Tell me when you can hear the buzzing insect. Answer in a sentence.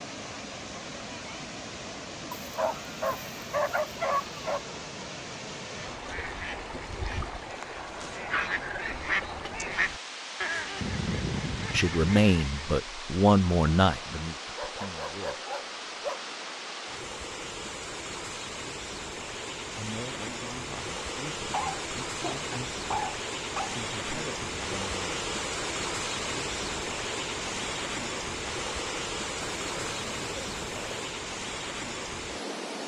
You can't hear the buzzing insect here.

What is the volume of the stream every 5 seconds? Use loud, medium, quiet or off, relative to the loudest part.
medium, medium, medium, medium, loud, loud, loud.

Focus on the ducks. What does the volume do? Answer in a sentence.
The volume of the ducks goes up.